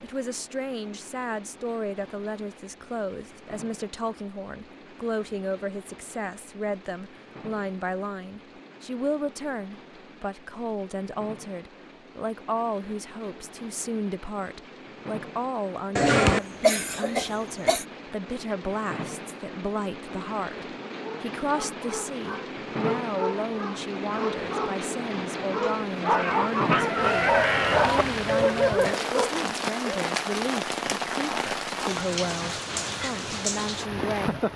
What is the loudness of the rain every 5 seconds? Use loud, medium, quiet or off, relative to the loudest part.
quiet, quiet, quiet, medium, medium, loud, loud.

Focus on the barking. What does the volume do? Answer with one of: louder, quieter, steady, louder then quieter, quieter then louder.
louder.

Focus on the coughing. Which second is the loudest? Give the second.
16 s.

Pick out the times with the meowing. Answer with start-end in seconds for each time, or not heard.
not heard.